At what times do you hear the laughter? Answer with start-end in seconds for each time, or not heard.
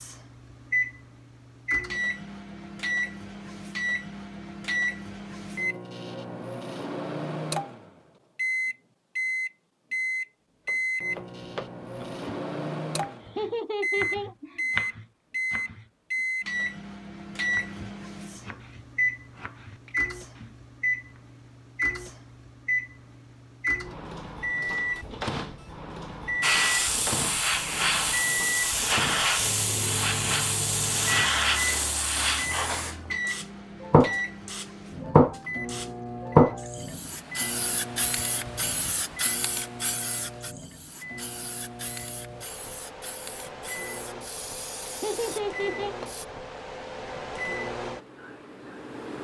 13.2-14.6, 44.9-46.0.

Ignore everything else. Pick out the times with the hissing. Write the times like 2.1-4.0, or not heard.
26.4-46.2.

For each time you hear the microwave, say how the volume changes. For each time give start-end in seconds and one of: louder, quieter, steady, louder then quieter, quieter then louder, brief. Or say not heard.
0.0-49.1 quieter.